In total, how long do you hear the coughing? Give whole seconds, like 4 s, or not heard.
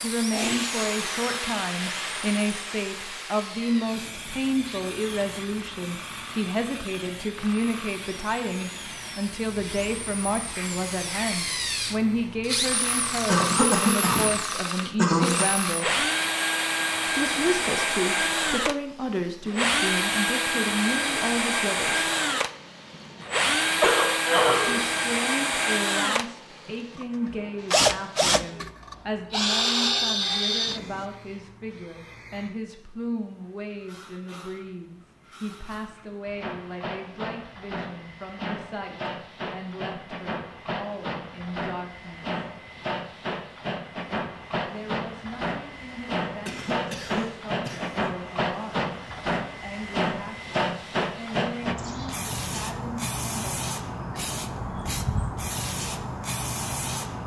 5 s.